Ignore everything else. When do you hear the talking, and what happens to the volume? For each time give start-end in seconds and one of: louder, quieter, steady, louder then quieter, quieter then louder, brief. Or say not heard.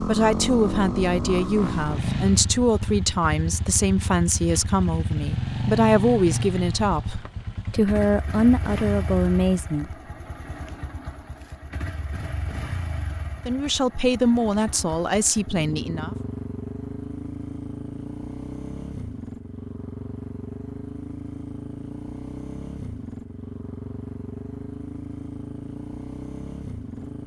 0.1-9.9 steady
13.4-16.1 brief.